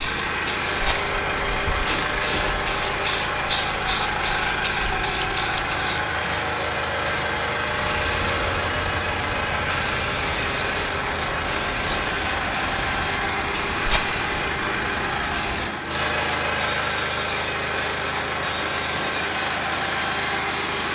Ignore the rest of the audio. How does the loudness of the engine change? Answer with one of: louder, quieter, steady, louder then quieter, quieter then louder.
steady.